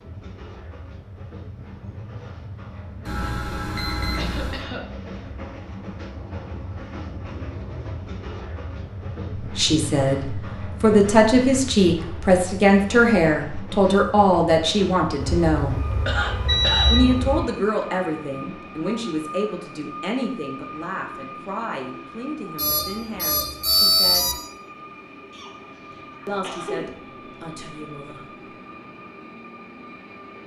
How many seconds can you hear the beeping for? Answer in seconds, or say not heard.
6 s.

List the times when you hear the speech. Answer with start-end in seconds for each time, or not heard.
9.3-15.8, 16.9-24.4, 26.2-28.3.